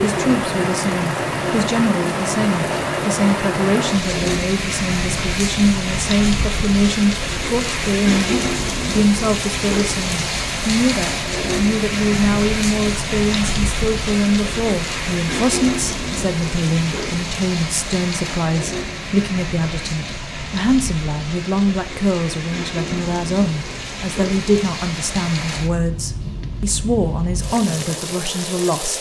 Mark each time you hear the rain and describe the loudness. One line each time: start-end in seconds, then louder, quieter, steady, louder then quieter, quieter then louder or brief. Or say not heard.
0.0-28.9 quieter.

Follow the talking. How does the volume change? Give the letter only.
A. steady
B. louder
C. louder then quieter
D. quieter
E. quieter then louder
A.